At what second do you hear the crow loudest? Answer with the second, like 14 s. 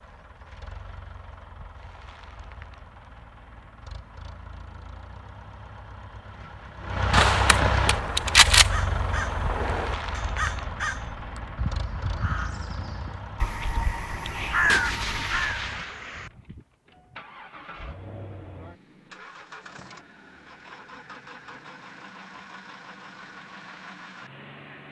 15 s.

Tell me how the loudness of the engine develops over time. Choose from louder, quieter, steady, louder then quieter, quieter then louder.
louder then quieter.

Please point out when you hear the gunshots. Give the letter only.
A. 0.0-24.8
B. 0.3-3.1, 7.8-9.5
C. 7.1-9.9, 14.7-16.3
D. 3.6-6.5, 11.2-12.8
C.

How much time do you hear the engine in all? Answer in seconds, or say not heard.
25 s.